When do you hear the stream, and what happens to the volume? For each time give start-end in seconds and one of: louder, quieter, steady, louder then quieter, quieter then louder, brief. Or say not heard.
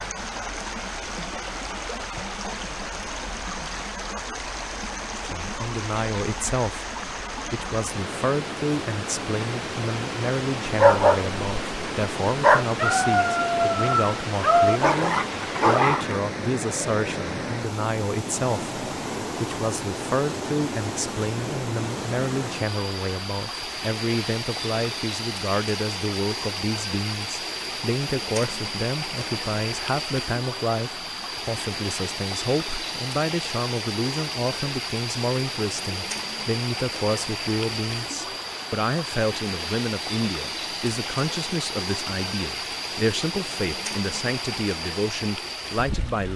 0.0-46.3 steady.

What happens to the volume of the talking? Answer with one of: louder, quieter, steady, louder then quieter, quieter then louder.
steady.